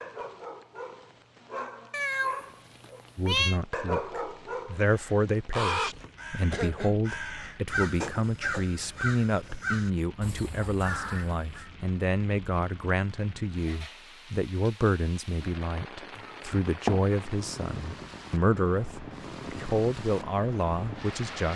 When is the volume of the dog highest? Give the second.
4 s.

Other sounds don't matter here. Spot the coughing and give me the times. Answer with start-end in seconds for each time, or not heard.
5.9-7.0.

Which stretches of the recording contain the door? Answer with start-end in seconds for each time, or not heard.
not heard.